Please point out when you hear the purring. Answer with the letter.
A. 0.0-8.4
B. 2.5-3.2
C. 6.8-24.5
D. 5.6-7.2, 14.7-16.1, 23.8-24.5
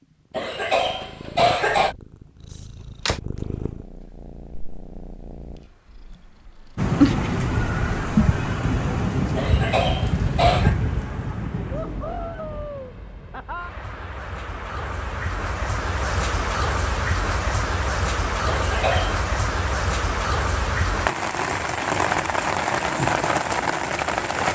A.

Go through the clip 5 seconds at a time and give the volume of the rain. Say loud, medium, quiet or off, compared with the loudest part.
off, loud, medium, loud, loud.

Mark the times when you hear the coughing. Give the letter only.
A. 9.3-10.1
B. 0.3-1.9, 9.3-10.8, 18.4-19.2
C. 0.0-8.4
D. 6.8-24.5
B.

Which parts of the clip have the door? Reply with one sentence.
The door can be heard from 2.5 to 3.2 s.